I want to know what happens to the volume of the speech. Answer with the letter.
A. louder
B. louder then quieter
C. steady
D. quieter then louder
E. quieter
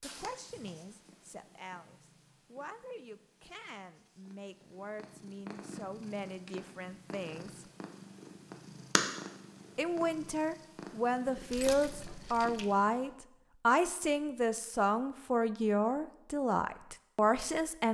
A.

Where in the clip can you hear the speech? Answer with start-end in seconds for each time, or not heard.
0.0-7.7, 9.8-17.9.